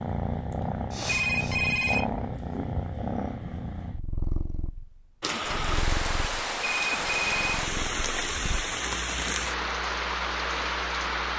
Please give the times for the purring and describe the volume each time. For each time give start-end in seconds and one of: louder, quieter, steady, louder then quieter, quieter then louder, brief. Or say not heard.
0.0-11.3 quieter.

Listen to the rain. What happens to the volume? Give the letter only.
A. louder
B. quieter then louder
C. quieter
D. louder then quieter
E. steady
E.